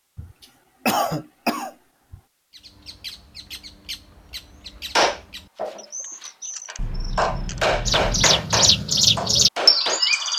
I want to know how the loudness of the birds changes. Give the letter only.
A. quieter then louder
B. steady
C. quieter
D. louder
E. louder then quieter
D.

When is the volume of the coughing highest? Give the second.
1 s.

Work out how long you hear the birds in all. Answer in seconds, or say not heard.
8 s.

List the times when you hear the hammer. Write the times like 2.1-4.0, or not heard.
5.0-10.0.